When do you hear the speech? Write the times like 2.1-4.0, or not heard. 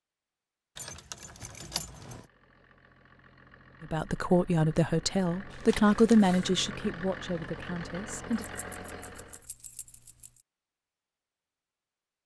3.8-8.4.